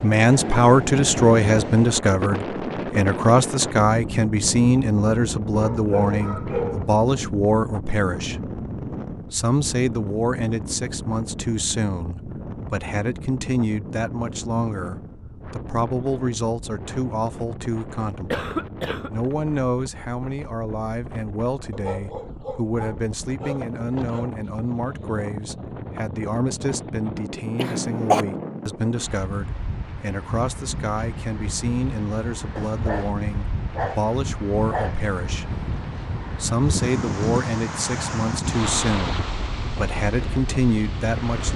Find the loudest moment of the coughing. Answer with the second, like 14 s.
28 s.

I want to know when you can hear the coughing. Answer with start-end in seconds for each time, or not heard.
18.3-19.1, 27.6-28.2.